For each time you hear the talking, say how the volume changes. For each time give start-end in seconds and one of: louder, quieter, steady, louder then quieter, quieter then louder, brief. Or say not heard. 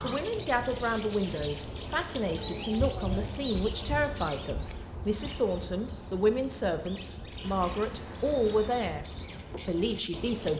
0.0-10.5 steady.